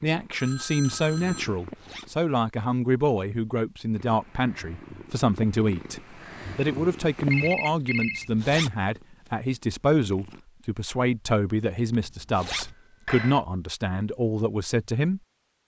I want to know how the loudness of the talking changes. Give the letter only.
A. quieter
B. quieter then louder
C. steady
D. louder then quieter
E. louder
C.